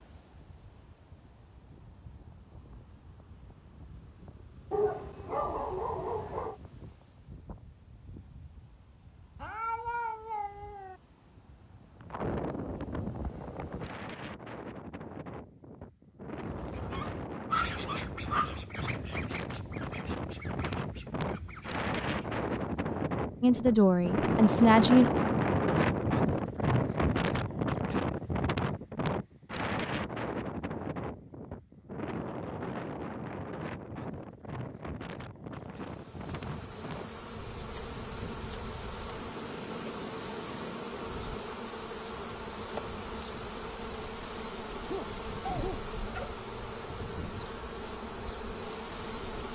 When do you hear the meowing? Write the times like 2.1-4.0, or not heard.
9.3-11.0.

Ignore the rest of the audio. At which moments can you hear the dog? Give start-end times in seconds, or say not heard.
4.7-6.5, 16.9-18.6, 44.9-46.4.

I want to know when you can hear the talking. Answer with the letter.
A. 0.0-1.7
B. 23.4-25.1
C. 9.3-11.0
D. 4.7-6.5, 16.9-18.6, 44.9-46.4
B.